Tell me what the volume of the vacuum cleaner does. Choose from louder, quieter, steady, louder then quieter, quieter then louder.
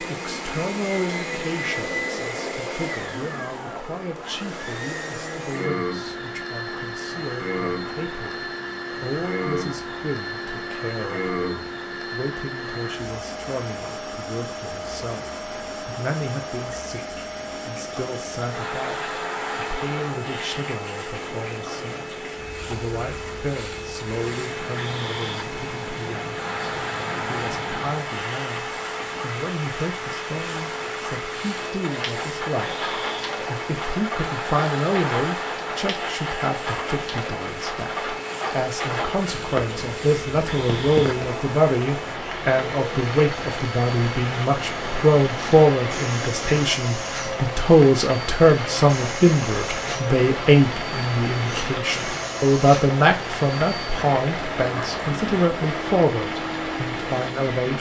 steady.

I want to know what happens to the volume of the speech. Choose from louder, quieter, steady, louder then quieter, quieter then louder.
louder.